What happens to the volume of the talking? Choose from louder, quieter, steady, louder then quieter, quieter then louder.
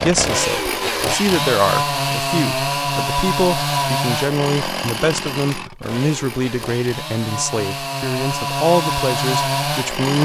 steady.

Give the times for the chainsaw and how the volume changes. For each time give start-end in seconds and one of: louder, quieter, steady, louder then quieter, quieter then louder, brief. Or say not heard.
0.0-10.1 quieter then louder.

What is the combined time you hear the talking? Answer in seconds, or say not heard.
10 s.